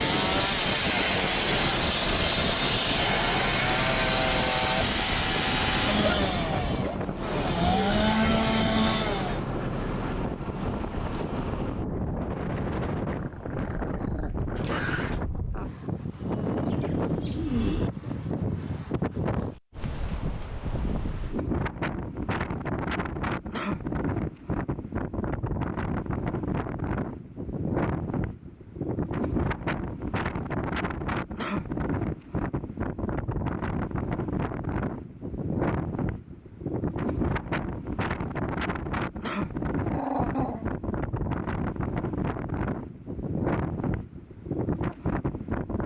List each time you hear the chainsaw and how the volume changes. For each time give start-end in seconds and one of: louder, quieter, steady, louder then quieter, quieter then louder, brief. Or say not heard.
0.0-9.4 steady.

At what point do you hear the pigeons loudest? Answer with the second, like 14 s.
18 s.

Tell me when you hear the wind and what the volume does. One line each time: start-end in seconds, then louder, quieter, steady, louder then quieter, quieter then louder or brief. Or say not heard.
0.0-45.8 steady.